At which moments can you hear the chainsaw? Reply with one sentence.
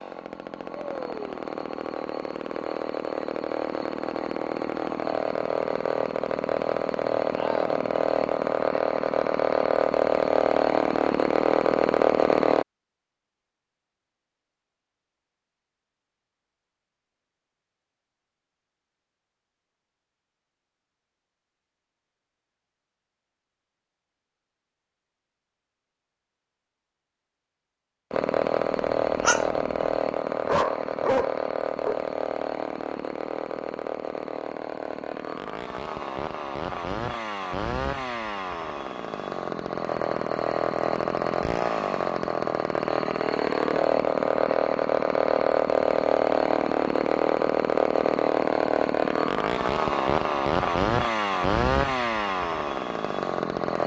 The chainsaw can be heard from 0.0 to 12.7 s and from 28.1 to 53.8 s.